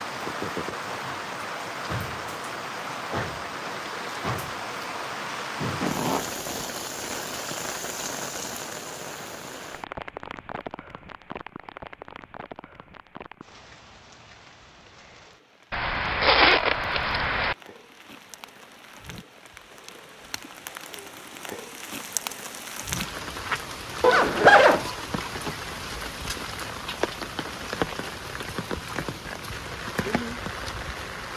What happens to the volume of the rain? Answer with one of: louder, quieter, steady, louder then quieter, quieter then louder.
quieter then louder.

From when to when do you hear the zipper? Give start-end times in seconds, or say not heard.
5.8-6.8, 15.7-17.6, 24.0-24.9.